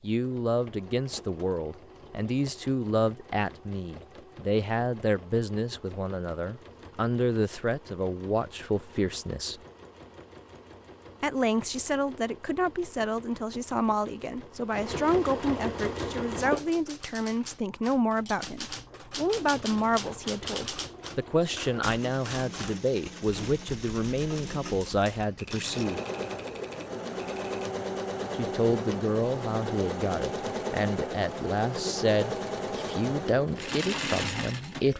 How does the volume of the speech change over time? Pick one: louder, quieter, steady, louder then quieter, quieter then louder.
steady.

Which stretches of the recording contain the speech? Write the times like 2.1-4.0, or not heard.
0.0-9.6, 11.2-26.0, 28.3-34.9.